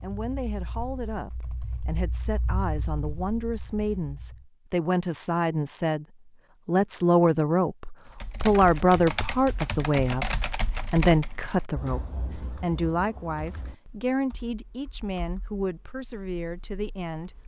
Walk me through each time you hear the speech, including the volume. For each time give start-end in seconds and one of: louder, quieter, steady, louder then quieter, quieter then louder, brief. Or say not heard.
0.0-6.0 louder
6.7-17.4 quieter.